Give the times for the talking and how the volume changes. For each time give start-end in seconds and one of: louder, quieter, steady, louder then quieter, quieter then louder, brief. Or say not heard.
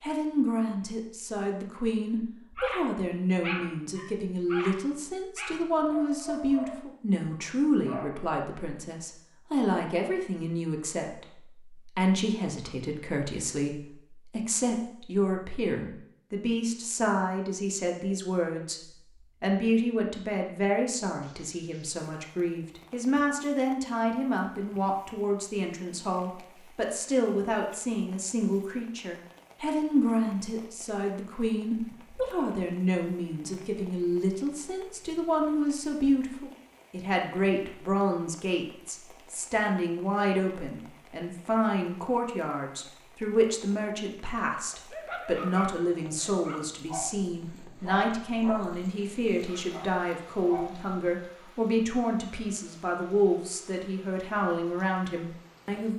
0.0-18.8 steady
19.4-55.9 steady.